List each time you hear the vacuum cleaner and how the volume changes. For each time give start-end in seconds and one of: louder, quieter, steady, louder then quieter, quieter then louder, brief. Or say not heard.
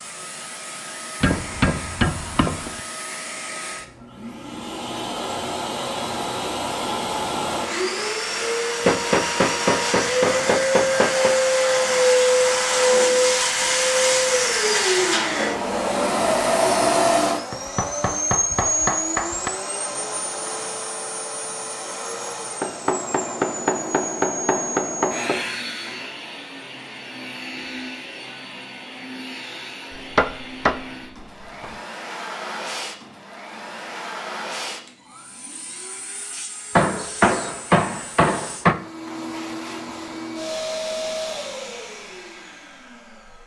0.0-43.4 louder then quieter.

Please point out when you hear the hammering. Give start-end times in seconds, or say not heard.
1.2-2.8, 8.8-11.3, 17.5-19.5, 22.6-25.4, 29.9-31.7, 36.8-38.8.